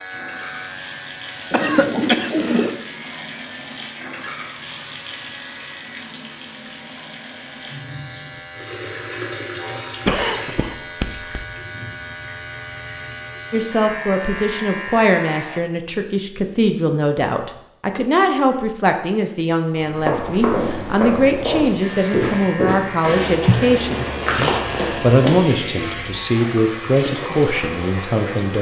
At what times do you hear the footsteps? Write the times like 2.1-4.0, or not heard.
19.8-25.6.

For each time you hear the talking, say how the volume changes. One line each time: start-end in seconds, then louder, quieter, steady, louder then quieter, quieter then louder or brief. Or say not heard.
13.5-28.5 steady.